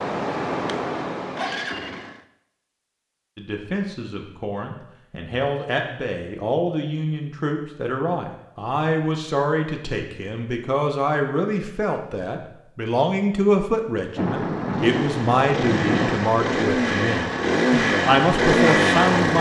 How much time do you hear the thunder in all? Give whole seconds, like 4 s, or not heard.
2 s.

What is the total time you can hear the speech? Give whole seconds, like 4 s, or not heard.
16 s.